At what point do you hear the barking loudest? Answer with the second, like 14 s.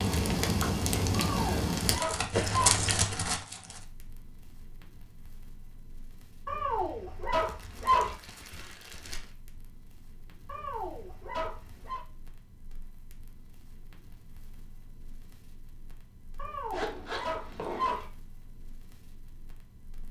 8 s.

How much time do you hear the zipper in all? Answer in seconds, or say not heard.
2 s.